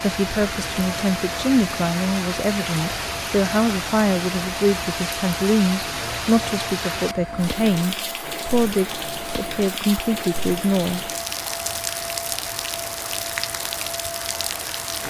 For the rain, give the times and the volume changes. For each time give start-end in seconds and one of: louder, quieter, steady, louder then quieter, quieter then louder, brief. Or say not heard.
0.0-15.0 steady.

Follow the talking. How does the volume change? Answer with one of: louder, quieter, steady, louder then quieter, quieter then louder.
steady.